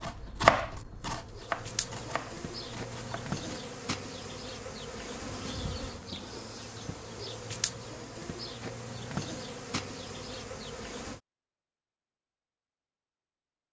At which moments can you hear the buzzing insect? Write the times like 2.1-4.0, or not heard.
0.0-11.2.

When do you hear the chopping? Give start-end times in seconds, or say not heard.
0.0-3.6.